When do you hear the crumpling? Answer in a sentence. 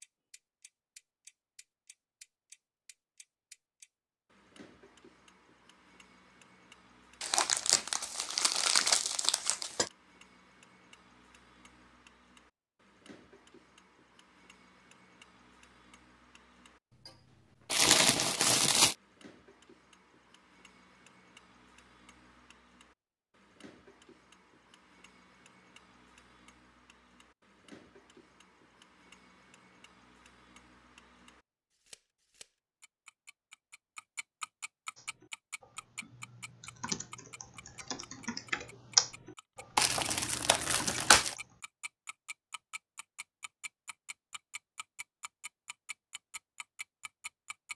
The crumpling can be heard from 7.2 to 9.9 s, from 17.7 to 18.9 s and from 39.8 to 41.4 s.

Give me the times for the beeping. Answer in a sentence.
The beeping can't be heard in this clip.